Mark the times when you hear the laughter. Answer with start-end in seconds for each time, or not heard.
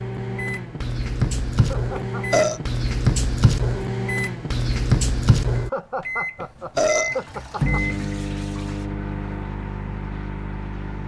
1.6-2.2, 5.6-7.8.